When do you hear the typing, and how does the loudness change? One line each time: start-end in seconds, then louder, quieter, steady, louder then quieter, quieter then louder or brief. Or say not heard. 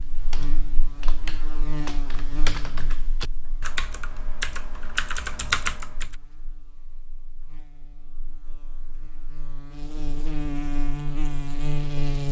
0.1-6.2 louder.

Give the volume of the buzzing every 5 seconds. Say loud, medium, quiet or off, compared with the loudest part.
medium, quiet, loud.